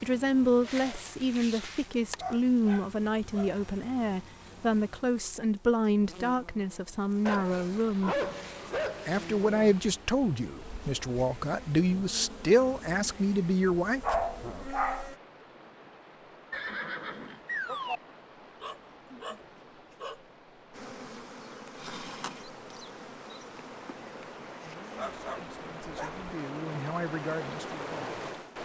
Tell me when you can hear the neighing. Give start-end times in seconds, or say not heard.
16.5-18.0.